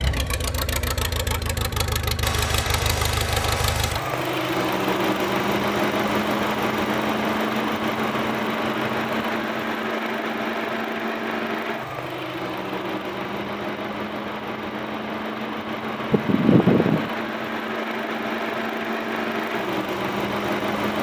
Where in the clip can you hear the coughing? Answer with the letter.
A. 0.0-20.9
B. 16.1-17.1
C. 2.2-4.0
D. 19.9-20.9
B.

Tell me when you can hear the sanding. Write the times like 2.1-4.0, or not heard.
2.2-4.0.